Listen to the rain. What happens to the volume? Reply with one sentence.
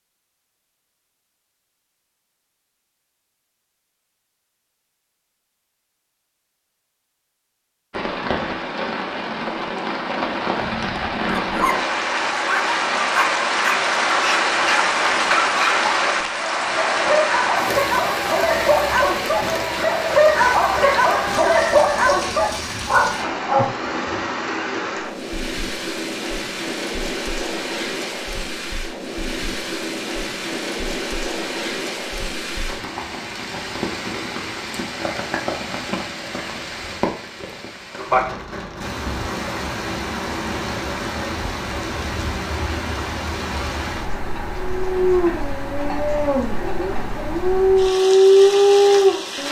The volume of the rain goes down.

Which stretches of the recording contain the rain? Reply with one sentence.
You can hear the rain from 7.9 to 49.4 s.